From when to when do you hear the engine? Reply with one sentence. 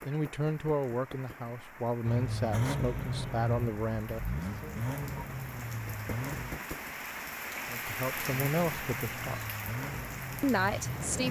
You can hear the engine from 2.0 to 6.6 s and from 8.2 to 11.2 s.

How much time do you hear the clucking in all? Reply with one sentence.
You can't hear the clucking here.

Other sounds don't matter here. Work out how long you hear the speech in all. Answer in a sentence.
You can hear the speech for 7 seconds altogether.